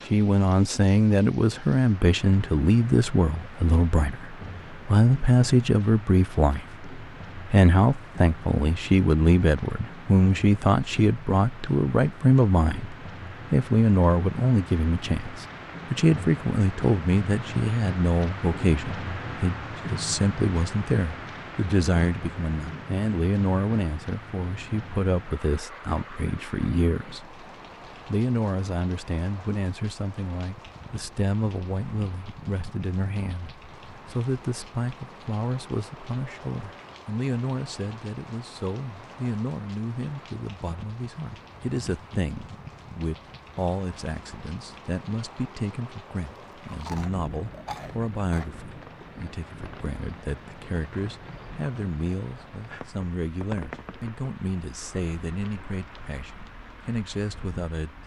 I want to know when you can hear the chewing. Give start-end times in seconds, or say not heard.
46.2-48.6.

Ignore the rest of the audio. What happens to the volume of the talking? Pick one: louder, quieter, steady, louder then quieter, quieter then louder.
quieter.